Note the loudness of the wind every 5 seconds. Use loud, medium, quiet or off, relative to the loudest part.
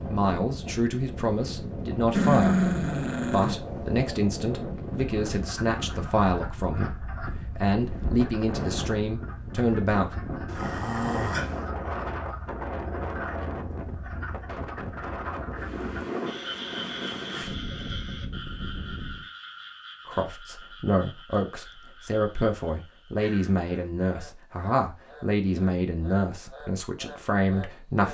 loud, loud, loud, loud, off, off.